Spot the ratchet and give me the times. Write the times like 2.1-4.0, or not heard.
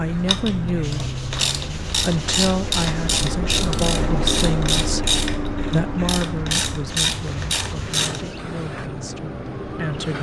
0.1-8.2.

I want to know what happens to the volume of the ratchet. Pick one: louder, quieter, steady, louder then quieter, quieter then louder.
steady.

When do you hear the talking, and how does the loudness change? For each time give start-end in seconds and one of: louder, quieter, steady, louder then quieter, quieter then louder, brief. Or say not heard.
0.0-1.1 brief
2.0-10.1 quieter.